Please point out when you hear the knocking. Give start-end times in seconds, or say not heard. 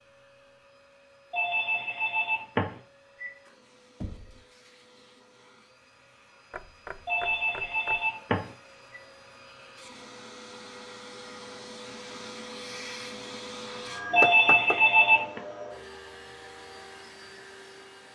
4.0-4.5, 6.5-8.0, 14.2-14.8.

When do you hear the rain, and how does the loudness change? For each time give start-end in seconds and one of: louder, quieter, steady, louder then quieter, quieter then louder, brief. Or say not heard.
not heard.